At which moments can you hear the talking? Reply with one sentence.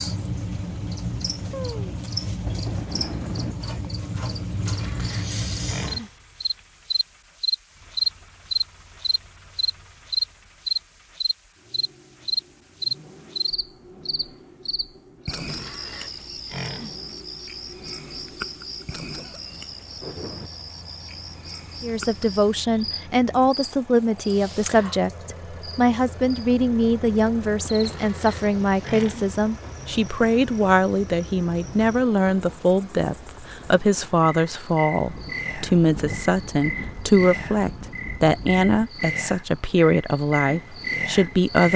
The talking can be heard from 21.8 to 41.7 s.